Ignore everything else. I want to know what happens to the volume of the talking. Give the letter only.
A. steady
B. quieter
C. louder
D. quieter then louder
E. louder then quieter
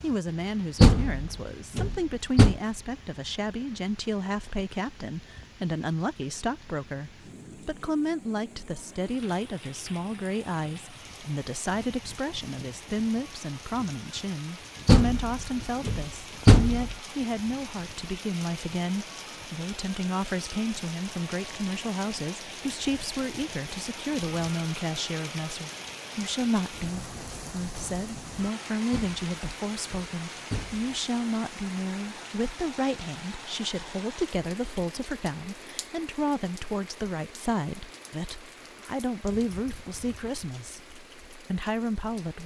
A.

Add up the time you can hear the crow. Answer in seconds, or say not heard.
not heard.